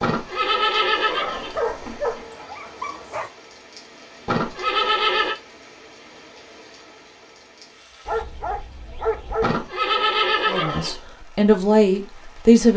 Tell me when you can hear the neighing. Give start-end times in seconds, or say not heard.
0.0-2.2, 4.2-5.3, 9.4-11.0.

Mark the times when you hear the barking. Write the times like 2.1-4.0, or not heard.
1.5-3.3, 8.1-9.6.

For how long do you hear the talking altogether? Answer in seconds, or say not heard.
2 s.